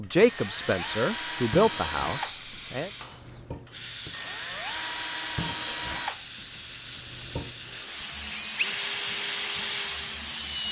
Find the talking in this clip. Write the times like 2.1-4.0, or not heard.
0.0-2.9.